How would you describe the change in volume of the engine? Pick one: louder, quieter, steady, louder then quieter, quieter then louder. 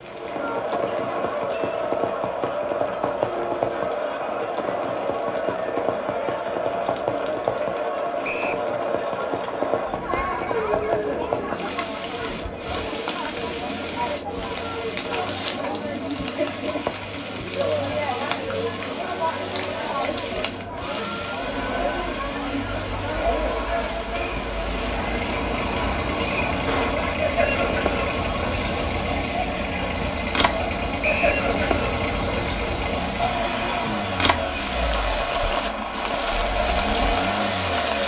steady.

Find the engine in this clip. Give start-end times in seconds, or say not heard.
24.6-38.0.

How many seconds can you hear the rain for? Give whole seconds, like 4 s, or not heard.
38 s.